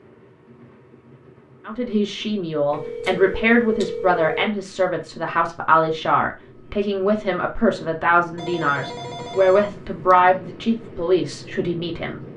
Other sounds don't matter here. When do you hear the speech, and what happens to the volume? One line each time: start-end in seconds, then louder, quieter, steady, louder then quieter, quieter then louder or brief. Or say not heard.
1.6-12.2 steady.